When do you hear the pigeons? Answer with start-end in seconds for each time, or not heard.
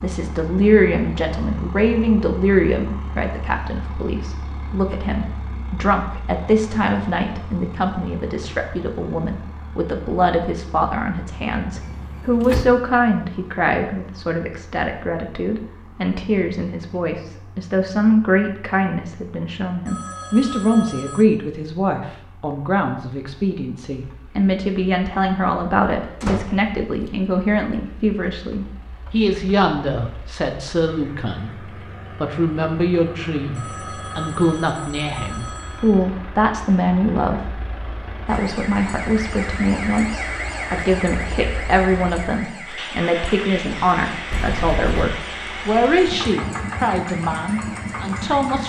not heard.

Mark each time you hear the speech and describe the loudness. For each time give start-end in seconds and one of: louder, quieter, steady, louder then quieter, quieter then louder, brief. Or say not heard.
0.0-37.6 steady
38.2-48.6 steady.